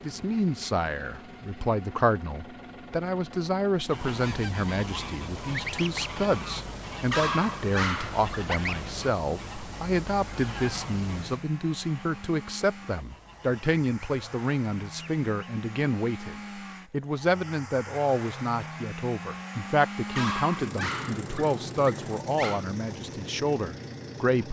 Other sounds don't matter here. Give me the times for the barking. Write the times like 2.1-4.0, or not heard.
7.1-8.6, 20.1-22.6.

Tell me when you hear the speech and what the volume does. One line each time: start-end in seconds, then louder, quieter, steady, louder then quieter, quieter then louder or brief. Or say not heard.
0.0-24.4 steady.